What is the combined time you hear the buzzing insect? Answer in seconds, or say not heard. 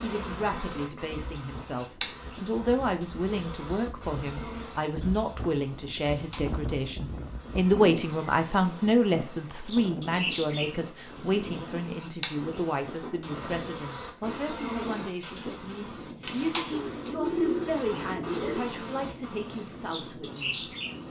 21 s.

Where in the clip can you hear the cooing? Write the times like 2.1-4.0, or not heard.
16.7-18.6.